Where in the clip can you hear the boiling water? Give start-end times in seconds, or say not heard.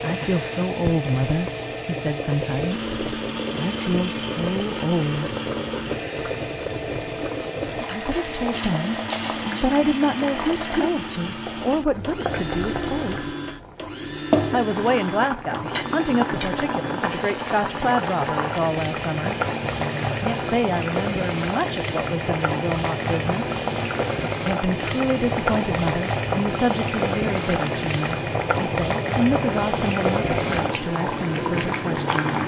0.0-32.4.